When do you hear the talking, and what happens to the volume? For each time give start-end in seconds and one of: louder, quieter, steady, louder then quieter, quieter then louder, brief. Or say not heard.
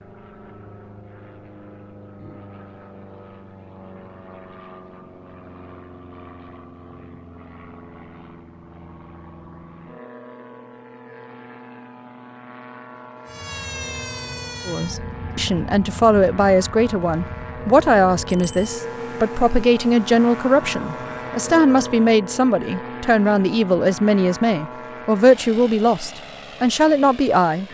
14.7-27.6 steady.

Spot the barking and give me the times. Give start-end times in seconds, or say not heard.
not heard.